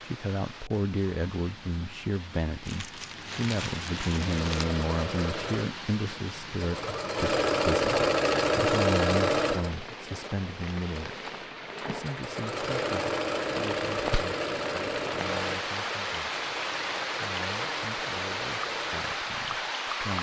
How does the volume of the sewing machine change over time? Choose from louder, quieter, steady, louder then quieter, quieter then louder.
louder then quieter.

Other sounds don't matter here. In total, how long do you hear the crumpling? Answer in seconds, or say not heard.
2 s.